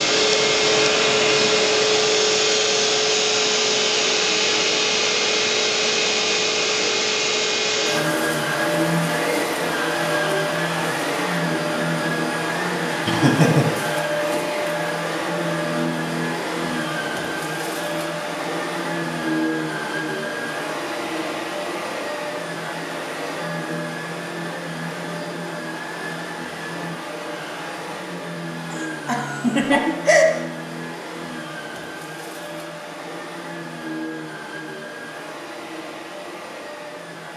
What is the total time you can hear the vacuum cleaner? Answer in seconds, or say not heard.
37 s.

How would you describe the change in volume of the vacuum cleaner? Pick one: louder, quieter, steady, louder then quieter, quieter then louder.
quieter.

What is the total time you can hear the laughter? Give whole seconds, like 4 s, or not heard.
2 s.